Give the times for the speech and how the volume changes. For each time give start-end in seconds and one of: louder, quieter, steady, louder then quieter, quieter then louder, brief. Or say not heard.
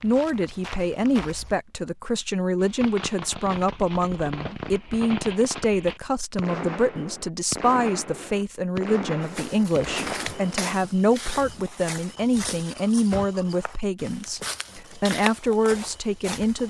0.0-16.6 steady.